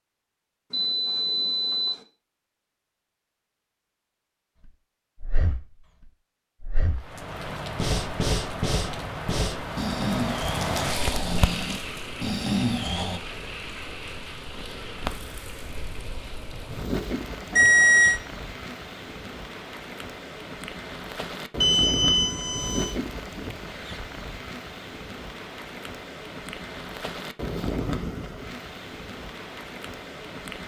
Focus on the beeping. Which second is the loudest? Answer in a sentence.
The loudest moment of the beeping is at 18 seconds.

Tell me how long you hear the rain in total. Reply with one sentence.
You can hear the rain for 24 seconds altogether.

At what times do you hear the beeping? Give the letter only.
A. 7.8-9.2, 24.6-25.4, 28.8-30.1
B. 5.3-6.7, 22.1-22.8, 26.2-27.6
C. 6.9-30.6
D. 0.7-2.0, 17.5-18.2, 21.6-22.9
D.